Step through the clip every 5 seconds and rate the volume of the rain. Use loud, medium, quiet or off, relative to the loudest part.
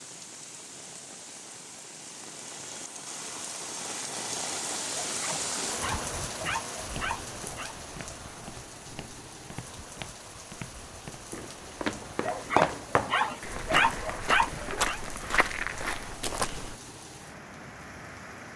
loud, loud, medium, medium.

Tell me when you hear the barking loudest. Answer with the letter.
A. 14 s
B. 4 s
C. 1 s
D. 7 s
A.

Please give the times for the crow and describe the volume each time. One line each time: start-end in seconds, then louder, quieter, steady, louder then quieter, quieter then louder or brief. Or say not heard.
not heard.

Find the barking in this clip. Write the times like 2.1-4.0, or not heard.
4.9-7.8, 12.2-15.0.